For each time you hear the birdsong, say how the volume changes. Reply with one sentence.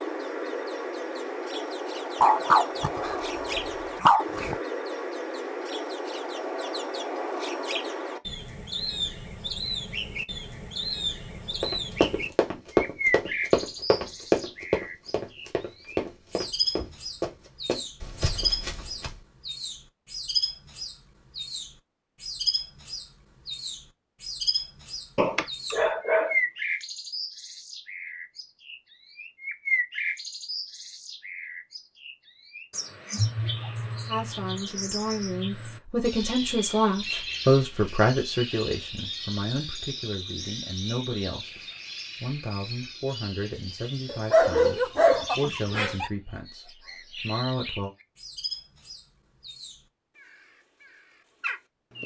The birdsong can be heard from 0.0 to 52.0 s, getting quieter.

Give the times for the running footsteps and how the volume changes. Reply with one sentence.
The running footsteps can be heard from 11.6 to 19.1 s, getting quieter.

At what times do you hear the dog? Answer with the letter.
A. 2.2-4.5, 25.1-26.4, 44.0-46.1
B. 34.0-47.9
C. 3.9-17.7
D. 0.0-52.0
A.